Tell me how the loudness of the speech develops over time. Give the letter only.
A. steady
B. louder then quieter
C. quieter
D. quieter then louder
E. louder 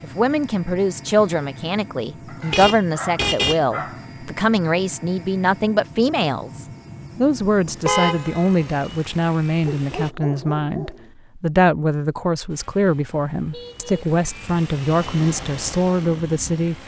A.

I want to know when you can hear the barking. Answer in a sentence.
You can hear the barking from 2.2 to 4.0 s and from 9.7 to 11.1 s.